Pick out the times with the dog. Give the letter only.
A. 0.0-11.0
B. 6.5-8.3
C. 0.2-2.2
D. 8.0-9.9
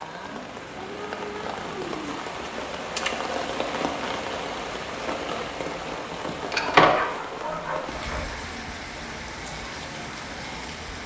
B.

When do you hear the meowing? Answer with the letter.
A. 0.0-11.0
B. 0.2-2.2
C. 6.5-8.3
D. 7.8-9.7
B.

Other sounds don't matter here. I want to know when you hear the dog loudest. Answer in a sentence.
The loudest moment of the dog is at 7 seconds.